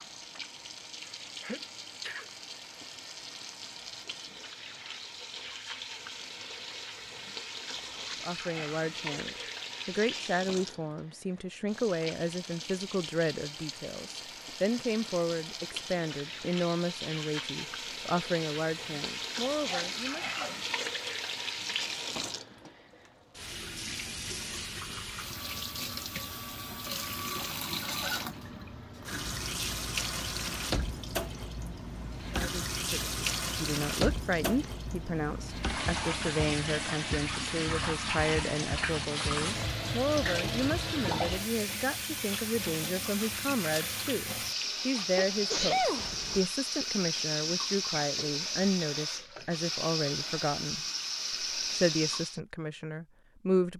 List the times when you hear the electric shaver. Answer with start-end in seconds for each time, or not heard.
not heard.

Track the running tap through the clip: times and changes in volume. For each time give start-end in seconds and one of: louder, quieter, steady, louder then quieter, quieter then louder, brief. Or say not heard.
0.0-52.4 louder.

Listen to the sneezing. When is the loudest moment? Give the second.
46 s.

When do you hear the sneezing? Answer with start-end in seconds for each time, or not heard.
1.1-2.2, 19.6-20.6, 45.1-46.5.